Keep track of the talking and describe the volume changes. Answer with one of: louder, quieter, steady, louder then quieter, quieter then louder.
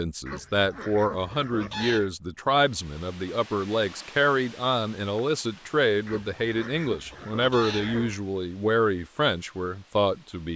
steady.